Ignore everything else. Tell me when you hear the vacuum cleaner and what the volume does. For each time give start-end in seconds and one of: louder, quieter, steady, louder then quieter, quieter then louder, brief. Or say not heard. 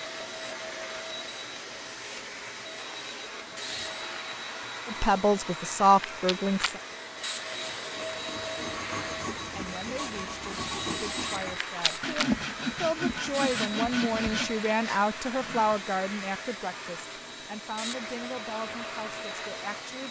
0.0-20.0 steady.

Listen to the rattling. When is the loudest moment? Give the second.
12 s.